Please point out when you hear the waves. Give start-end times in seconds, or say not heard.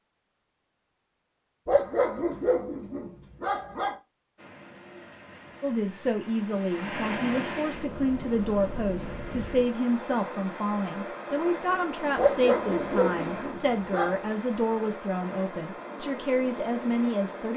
4.3-17.5.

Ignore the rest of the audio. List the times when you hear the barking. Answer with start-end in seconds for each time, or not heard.
1.6-4.0, 12.2-14.3.